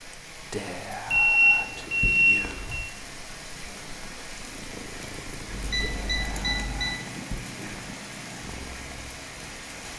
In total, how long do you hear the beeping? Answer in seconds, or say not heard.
3 s.